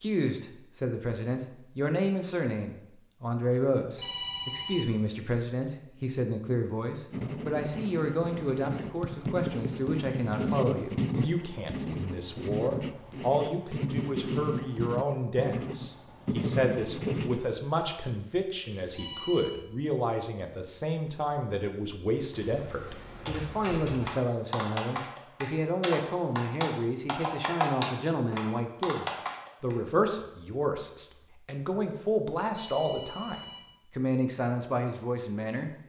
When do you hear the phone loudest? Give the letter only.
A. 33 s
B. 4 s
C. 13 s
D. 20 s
B.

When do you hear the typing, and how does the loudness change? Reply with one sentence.
The typing can be heard from 22.3 to 29.8 s, getting louder.